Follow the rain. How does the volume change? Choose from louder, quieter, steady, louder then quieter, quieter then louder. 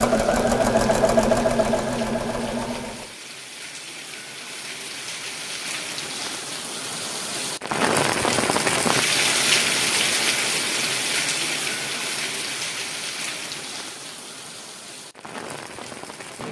louder then quieter.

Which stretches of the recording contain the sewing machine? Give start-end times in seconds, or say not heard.
0.0-3.1.